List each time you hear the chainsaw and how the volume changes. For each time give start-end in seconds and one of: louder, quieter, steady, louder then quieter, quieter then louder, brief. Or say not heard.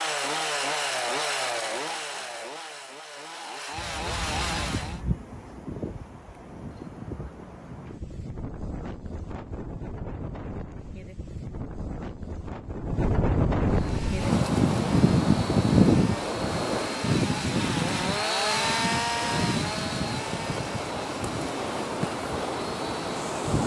0.0-5.0 quieter then louder
13.7-23.6 louder then quieter.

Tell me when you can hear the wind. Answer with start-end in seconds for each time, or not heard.
3.8-23.6.